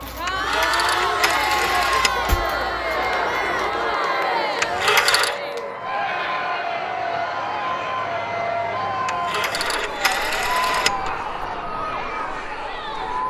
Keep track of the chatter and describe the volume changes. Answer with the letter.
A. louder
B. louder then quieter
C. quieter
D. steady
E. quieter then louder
C.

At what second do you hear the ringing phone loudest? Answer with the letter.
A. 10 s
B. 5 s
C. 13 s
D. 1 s
B.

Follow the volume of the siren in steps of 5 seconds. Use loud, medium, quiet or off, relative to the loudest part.
medium, loud, loud.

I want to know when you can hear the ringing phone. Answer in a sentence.
The ringing phone can be heard from 0.2 to 2.3 s, from 4.6 to 5.4 s and from 9.1 to 11.2 s.